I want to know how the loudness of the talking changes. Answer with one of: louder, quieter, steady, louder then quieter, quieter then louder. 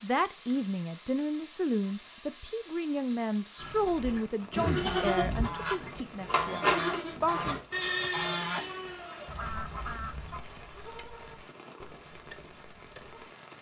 quieter.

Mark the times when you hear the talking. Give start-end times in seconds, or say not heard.
0.0-7.6.